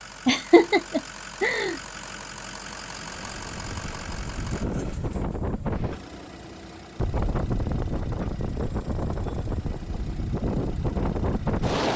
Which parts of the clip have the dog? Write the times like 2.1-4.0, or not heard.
not heard.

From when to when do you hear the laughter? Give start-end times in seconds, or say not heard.
0.2-1.8.